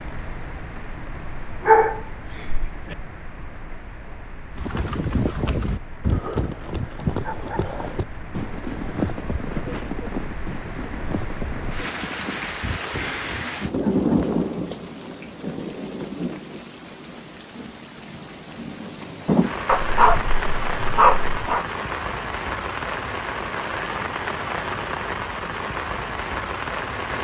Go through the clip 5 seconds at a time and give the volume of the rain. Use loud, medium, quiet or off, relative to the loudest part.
quiet, quiet, loud, loud, loud, loud.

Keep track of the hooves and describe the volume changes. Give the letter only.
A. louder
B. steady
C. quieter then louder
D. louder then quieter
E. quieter
E.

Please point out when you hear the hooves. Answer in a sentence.
You can hear the hooves from 4.5 to 14.3 s.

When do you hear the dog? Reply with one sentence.
You can hear the dog from 1.6 to 3.0 s and from 19.6 to 21.6 s.